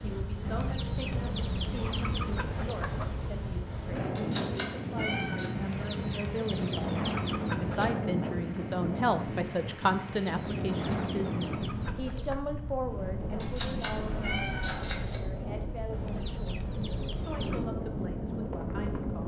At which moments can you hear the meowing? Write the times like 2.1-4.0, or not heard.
4.2-5.5, 13.4-15.2.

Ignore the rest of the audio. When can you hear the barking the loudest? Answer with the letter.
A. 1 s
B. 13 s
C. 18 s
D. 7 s
C.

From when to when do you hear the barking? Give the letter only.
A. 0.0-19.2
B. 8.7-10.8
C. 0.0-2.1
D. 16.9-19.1
D.